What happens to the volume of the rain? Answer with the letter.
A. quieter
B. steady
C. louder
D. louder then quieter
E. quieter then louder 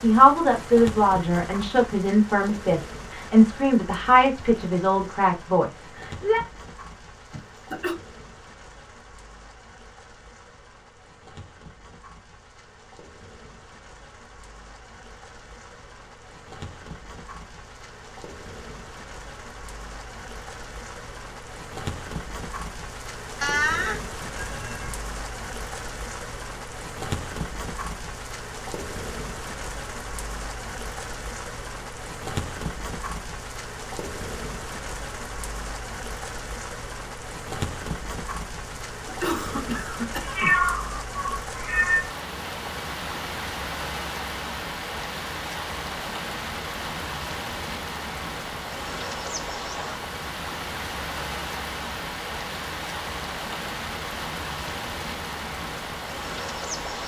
C.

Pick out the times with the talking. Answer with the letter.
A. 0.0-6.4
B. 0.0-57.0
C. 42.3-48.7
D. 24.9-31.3
A.